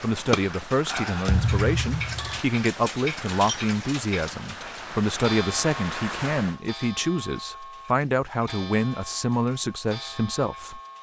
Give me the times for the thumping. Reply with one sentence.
The thumping can be heard from 1.2 to 2.4 s.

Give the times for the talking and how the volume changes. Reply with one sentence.
You can hear the talking from 0.0 to 10.8 s, at a steady volume.